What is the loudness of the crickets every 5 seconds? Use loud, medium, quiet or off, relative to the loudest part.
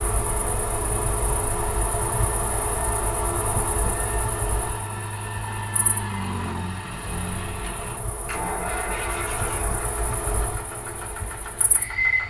loud, medium, loud.